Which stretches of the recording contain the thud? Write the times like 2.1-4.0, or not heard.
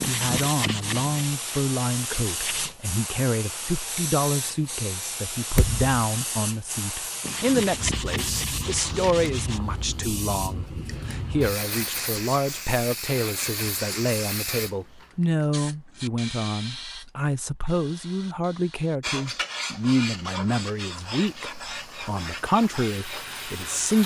5.5-6.0.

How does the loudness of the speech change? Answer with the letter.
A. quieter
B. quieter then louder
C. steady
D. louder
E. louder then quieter
C.